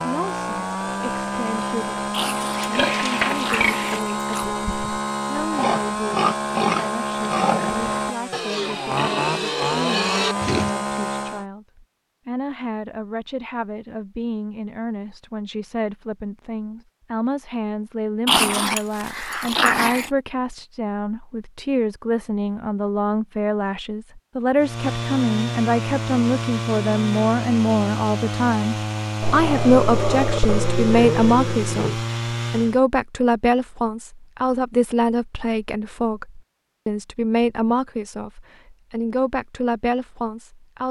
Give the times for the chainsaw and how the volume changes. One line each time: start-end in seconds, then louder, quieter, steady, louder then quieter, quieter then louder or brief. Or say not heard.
0.0-11.4 steady
24.6-32.8 steady.